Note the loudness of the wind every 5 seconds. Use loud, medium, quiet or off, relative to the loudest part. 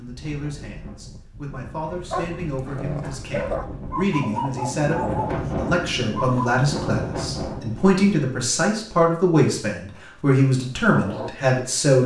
medium, loud, off.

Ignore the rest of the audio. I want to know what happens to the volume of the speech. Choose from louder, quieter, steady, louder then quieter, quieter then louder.
louder.